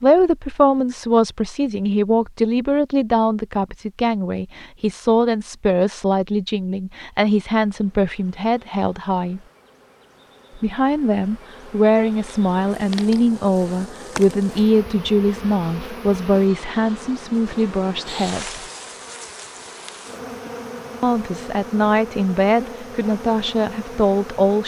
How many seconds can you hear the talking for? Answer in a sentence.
You can hear the talking for 21 seconds altogether.